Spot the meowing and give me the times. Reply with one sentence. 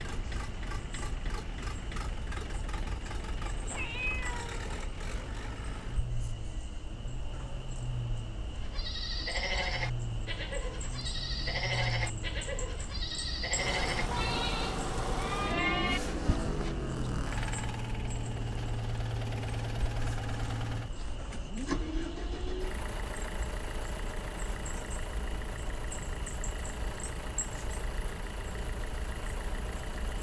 You can hear the meowing from 3.6 to 4.7 s.